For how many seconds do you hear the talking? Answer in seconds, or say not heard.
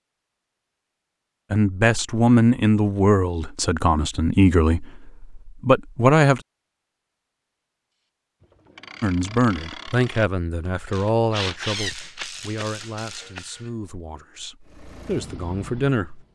12 s.